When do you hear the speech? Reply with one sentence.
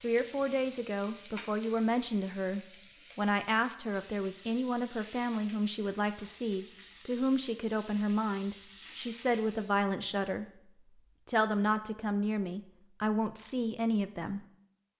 The speech can be heard from 0.0 to 14.4 s.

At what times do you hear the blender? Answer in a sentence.
The blender can't be heard in this clip.